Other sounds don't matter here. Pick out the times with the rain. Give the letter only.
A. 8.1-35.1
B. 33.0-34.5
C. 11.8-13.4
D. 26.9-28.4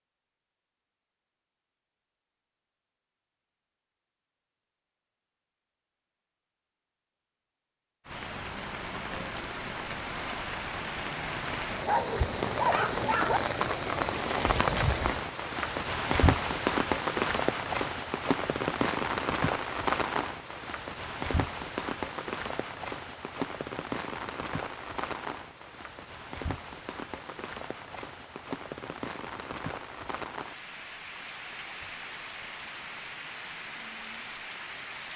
A.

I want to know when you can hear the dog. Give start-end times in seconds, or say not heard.
11.8-13.4.